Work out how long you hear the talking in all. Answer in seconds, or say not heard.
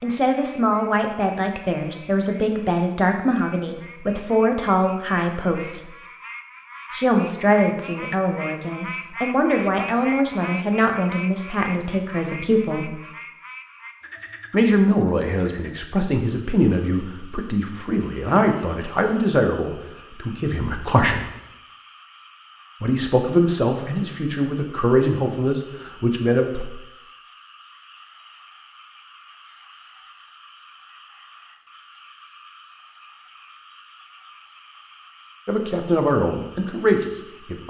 25 s.